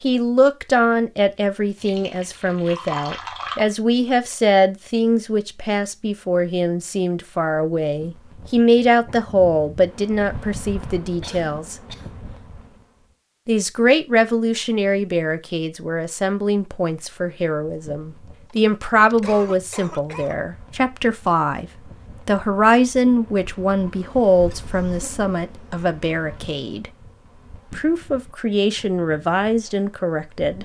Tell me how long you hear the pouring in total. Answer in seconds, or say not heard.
2 s.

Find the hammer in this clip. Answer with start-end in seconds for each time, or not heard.
not heard.